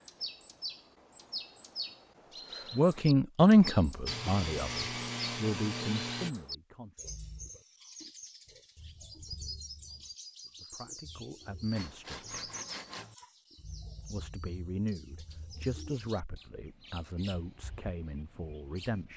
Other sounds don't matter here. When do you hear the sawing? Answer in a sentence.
You can hear the sawing from 4.0 to 6.3 s and from 11.7 to 13.2 s.